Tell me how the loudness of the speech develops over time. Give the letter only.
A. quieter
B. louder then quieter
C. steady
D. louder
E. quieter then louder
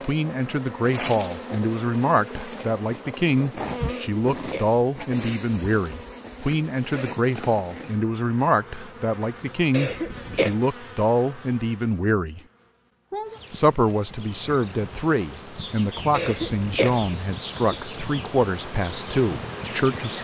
C.